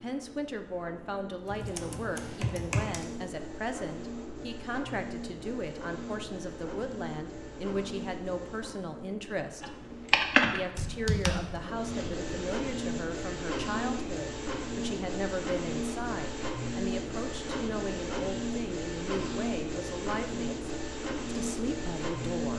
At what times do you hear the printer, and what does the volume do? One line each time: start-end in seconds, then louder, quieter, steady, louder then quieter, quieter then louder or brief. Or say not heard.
0.0-22.5 louder.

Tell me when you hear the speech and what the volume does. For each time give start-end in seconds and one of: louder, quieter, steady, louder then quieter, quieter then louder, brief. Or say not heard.
0.0-9.8 steady
10.5-22.5 steady.